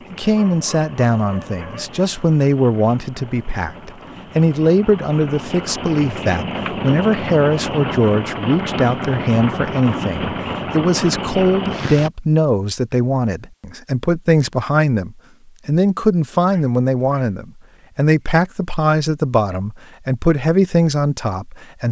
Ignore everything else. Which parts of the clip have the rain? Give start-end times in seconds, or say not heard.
0.0-12.1.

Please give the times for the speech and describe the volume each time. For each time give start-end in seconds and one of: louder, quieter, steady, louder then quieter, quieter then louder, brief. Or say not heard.
0.1-21.8 steady.